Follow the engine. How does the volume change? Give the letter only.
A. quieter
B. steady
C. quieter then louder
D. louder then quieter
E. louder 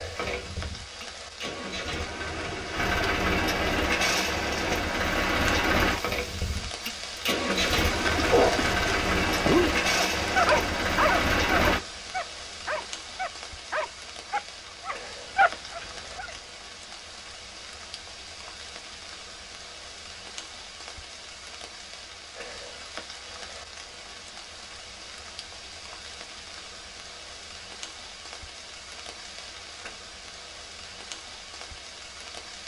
E.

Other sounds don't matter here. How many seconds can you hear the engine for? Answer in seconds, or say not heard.
12 s.